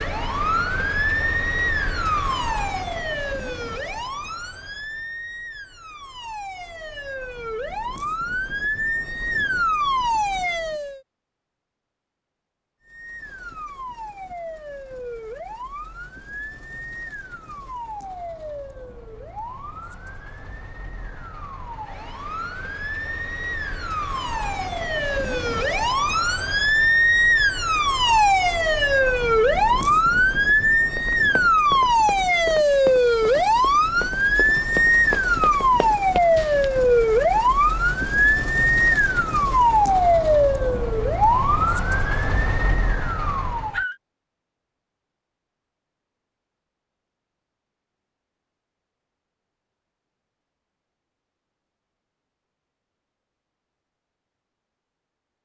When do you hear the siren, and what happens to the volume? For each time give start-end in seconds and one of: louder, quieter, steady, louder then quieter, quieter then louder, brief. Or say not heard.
0.0-11.0 quieter then louder
12.8-44.0 louder.